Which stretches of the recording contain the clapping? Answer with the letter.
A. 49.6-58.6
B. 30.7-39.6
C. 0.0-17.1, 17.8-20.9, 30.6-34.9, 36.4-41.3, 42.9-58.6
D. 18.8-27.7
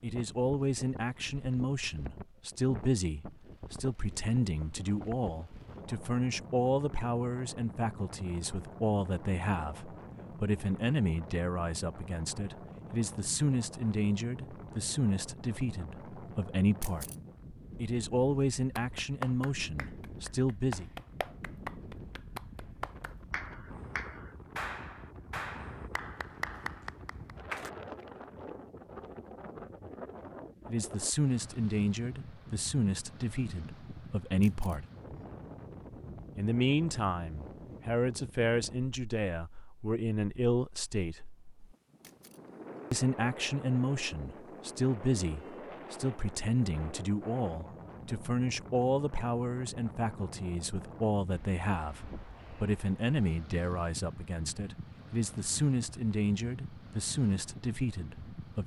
D.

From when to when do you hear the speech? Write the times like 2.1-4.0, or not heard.
0.0-17.1, 17.8-20.9, 30.6-34.9, 36.4-41.3, 42.9-58.6.